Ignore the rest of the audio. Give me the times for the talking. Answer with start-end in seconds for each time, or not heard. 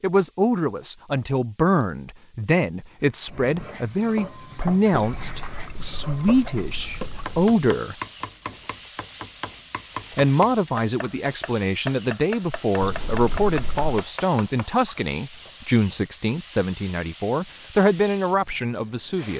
0.0-8.0, 10.2-19.3.